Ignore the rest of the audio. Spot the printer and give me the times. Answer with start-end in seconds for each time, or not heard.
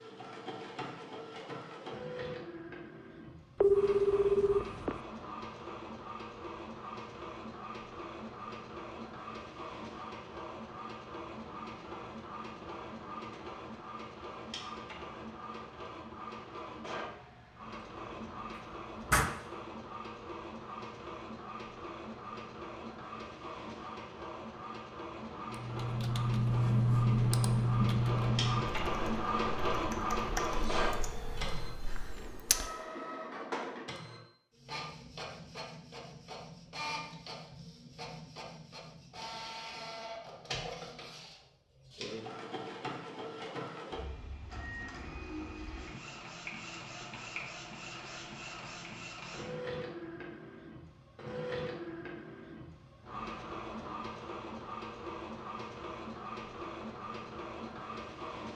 0.0-58.5.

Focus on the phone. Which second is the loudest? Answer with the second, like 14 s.
4 s.